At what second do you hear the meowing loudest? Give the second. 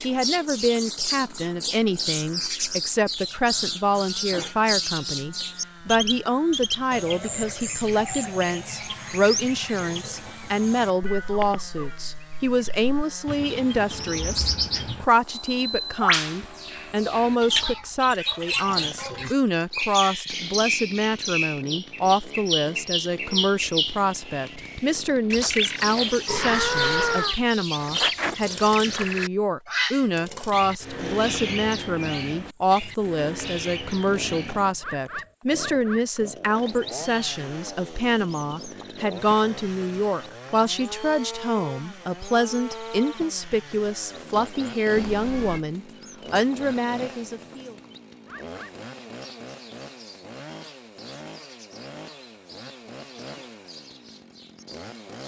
27 s.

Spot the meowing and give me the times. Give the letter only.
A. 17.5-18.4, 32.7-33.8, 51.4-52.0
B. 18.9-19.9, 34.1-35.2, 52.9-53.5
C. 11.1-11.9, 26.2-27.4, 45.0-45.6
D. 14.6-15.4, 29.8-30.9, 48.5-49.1
C.